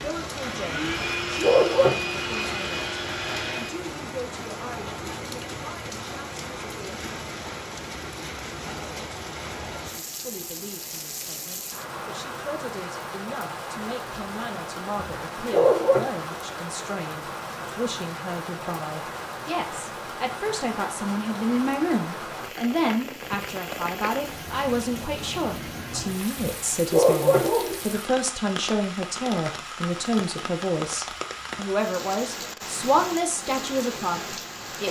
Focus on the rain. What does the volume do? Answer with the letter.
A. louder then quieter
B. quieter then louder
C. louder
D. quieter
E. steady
E.